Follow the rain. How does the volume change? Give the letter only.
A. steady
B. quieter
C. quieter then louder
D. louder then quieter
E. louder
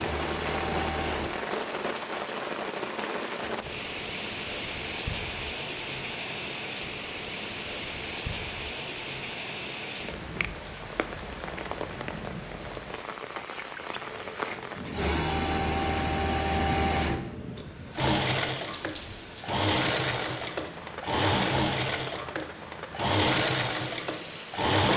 B.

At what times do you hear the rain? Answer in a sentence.
You can hear the rain from 0.0 to 24.8 s.